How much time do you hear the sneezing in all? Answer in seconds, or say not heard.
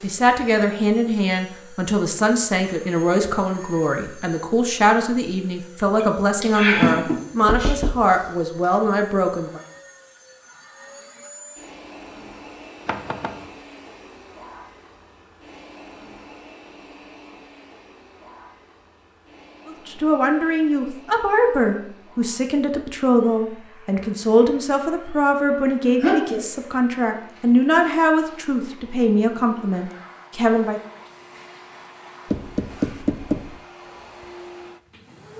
2 s.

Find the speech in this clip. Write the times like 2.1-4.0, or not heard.
0.0-9.6, 19.6-30.8.